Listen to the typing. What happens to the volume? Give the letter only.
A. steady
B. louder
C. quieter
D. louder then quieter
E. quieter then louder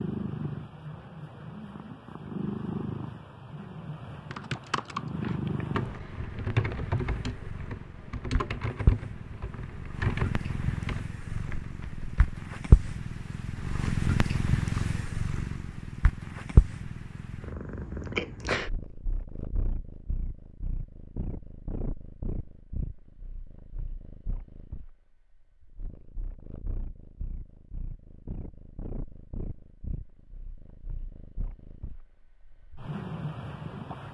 C.